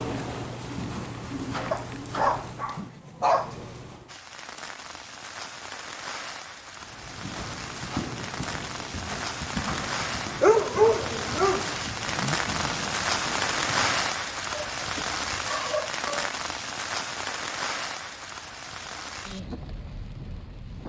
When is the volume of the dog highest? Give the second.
11 s.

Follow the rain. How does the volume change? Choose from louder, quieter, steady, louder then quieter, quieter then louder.
louder then quieter.